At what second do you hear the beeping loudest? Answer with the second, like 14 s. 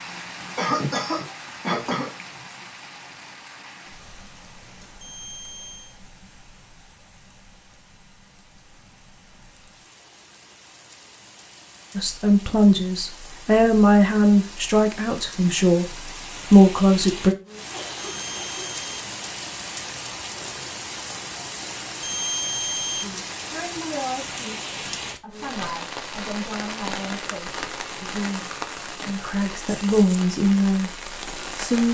22 s.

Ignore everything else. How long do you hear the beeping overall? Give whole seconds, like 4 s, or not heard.
3 s.